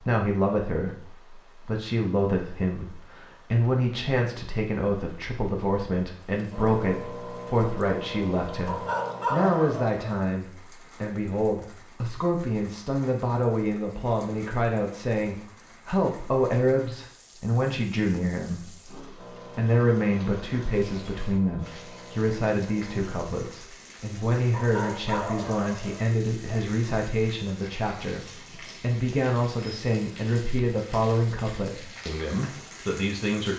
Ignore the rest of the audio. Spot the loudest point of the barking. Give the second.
9 s.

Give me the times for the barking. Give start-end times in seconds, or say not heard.
8.7-10.2, 24.5-26.6.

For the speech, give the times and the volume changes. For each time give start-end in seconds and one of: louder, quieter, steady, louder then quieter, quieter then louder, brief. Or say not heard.
0.0-33.5 steady.